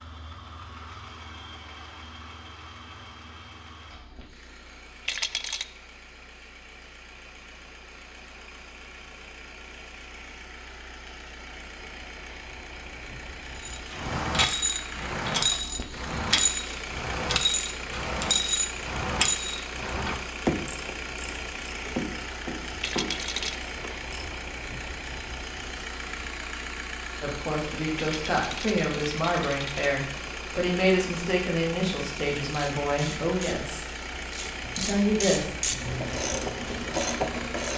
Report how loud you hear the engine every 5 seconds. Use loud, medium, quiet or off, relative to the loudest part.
medium, medium, medium, loud, loud, loud, loud, loud.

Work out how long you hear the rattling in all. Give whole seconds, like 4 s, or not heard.
3 s.